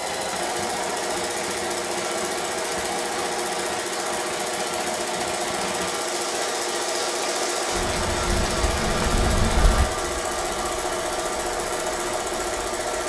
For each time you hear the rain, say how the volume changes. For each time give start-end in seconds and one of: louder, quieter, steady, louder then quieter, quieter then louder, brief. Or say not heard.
0.0-13.0 louder then quieter.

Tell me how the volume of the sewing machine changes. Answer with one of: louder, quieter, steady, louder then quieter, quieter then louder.
steady.